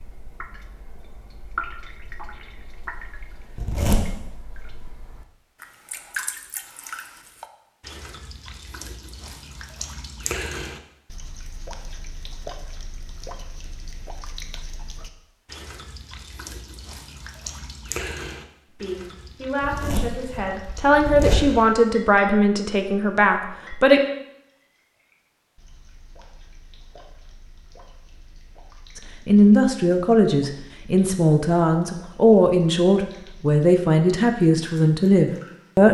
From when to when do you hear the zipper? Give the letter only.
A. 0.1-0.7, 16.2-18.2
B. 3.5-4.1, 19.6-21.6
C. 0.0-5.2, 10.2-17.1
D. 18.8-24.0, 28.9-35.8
B.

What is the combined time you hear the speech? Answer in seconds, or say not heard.
12 s.